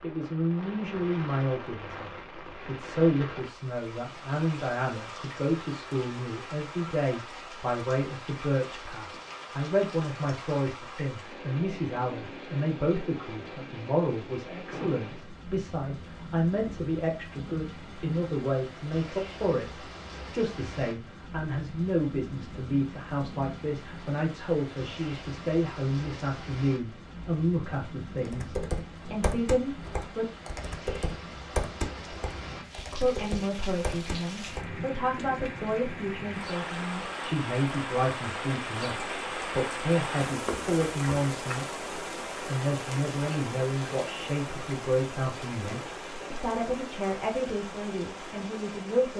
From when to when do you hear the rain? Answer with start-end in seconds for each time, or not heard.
0.0-49.1.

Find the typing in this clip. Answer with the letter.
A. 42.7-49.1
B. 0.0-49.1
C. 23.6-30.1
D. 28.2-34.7
D.